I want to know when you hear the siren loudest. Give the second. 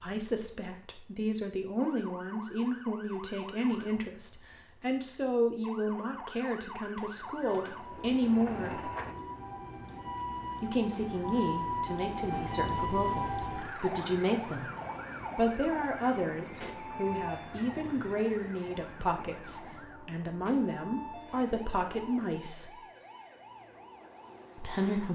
13 s.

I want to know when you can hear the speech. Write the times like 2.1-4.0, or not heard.
0.0-8.8, 10.6-14.7, 15.3-22.8, 24.6-25.0.